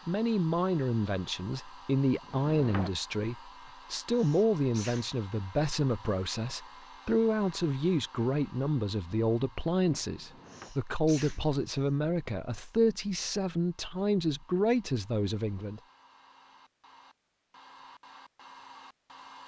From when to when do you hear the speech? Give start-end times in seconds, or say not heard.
0.1-15.8.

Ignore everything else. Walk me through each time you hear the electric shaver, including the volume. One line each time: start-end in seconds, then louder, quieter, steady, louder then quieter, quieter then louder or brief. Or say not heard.
not heard.